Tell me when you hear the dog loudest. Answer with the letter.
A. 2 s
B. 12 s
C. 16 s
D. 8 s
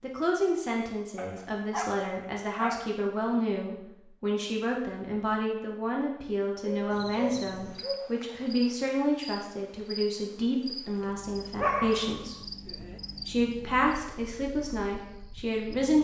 B.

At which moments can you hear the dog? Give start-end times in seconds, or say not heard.
1.1-3.0, 6.6-8.1, 11.6-13.0.